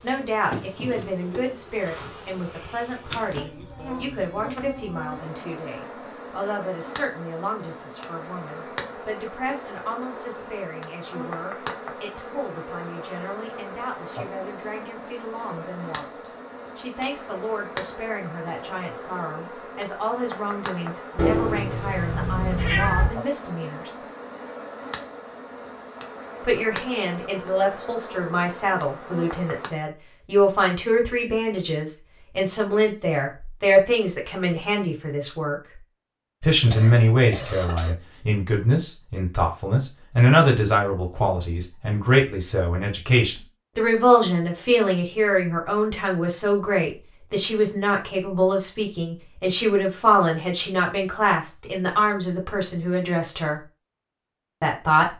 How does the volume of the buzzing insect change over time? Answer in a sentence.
The volume of the buzzing insect stays about the same.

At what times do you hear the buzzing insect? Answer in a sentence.
You can hear the buzzing insect from 0.0 to 29.7 s.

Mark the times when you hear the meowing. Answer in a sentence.
The meowing can be heard from 21.1 to 23.1 s.